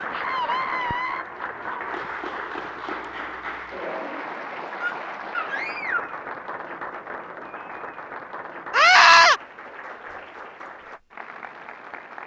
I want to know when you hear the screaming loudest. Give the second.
9 s.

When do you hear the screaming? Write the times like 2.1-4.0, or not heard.
0.1-1.2, 4.8-6.2, 8.7-9.4.